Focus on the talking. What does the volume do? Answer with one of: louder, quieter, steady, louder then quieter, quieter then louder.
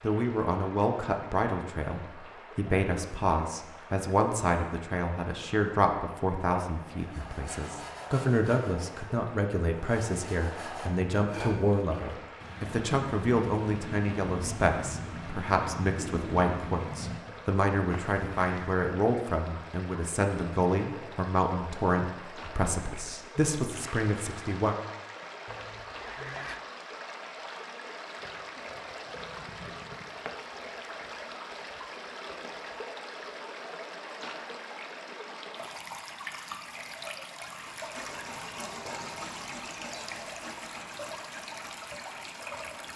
steady.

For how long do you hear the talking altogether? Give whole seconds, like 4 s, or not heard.
25 s.